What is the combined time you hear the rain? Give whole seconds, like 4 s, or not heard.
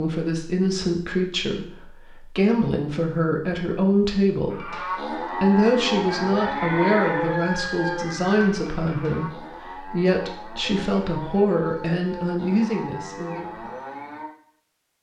not heard.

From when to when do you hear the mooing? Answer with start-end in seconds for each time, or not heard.
4.5-14.3.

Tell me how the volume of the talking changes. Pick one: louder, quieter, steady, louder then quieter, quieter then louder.
steady.